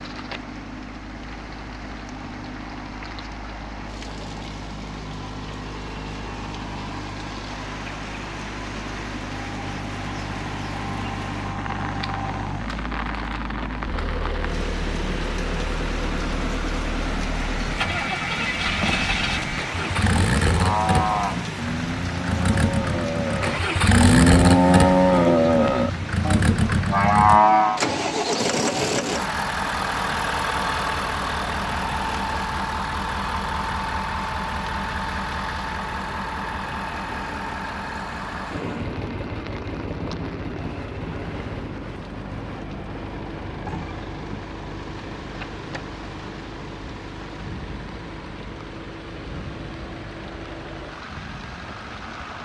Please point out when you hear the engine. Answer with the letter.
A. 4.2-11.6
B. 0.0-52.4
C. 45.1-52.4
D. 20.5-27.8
B.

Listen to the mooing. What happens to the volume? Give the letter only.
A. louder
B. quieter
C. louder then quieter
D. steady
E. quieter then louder
A.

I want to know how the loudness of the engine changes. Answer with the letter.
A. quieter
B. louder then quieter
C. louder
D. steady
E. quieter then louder
B.